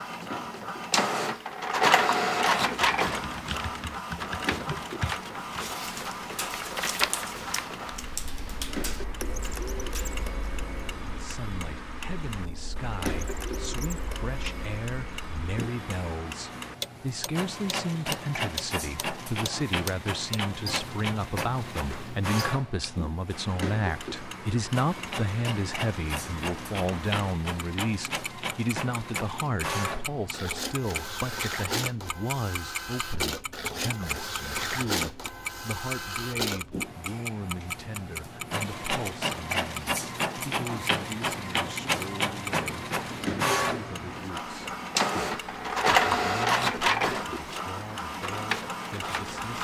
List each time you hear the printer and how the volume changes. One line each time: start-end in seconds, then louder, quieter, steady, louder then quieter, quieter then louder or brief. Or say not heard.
0.0-49.5 quieter then louder.